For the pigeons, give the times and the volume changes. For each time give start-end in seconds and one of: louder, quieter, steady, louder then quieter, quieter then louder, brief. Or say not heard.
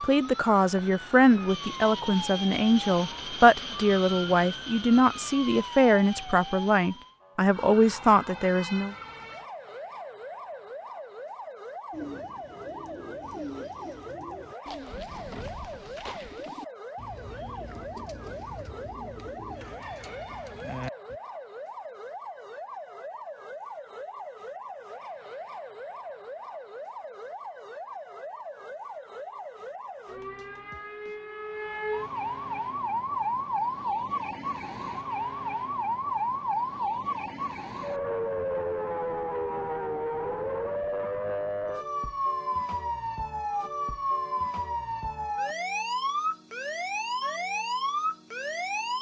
11.9-21.2 steady.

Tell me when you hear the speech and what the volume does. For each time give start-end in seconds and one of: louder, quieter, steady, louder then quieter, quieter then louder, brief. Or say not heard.
0.0-8.9 steady.